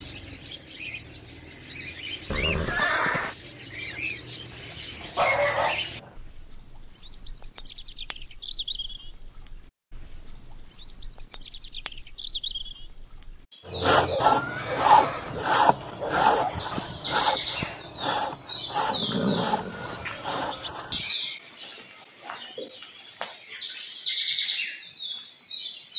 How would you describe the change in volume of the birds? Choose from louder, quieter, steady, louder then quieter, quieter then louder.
louder.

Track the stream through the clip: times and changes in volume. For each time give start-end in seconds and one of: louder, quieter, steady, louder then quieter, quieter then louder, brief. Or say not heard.
not heard.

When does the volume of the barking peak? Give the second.
5 s.